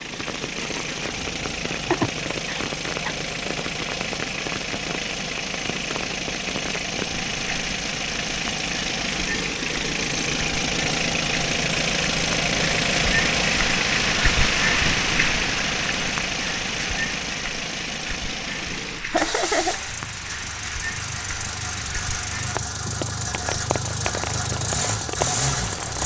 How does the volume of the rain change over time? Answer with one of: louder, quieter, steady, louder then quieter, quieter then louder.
louder then quieter.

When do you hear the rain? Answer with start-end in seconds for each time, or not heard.
0.0-26.0.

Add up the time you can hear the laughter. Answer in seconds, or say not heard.
2 s.